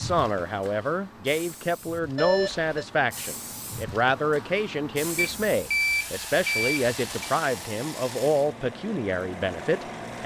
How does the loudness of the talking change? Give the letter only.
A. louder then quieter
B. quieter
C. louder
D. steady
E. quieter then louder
D.